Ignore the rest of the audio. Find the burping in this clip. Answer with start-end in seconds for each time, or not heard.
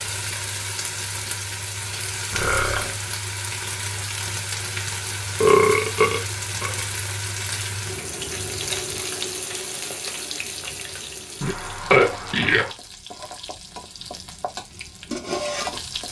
2.3-2.9, 5.4-6.8, 11.4-12.7.